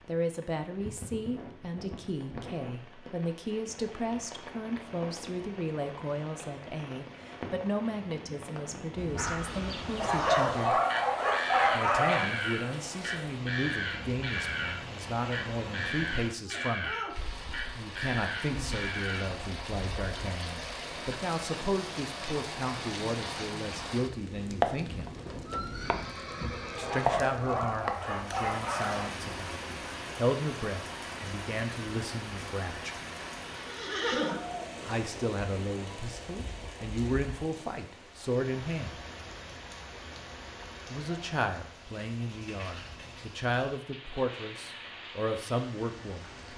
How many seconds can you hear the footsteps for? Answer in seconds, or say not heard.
not heard.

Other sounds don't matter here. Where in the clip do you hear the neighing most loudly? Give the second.
34 s.